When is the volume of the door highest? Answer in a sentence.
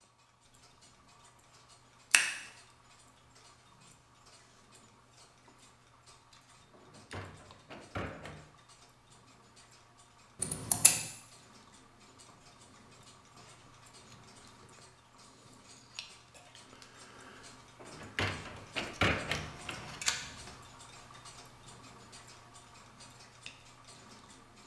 The loudest moment of the door is at 19 seconds.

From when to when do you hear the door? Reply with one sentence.
You can hear the door from 6.8 to 8.4 s and from 17.8 to 20.0 s.